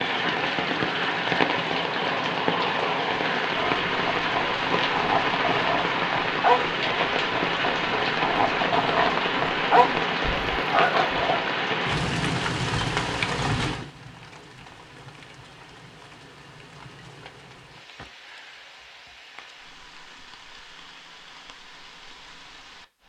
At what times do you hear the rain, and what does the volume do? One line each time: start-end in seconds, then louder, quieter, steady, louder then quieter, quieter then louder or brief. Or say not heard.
0.0-23.0 quieter.